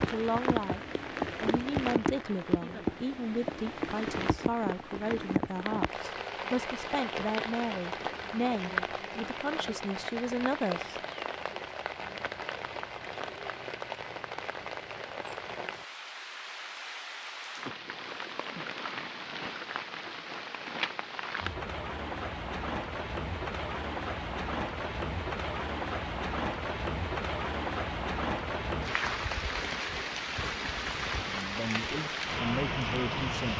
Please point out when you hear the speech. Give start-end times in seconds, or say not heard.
0.0-11.0, 31.2-33.5.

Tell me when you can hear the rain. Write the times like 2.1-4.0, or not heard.
0.0-33.5.